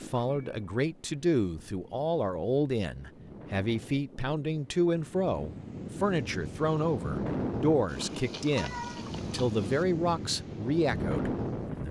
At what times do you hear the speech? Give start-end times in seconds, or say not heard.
0.0-11.8.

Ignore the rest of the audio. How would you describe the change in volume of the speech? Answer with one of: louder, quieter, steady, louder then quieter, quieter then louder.
steady.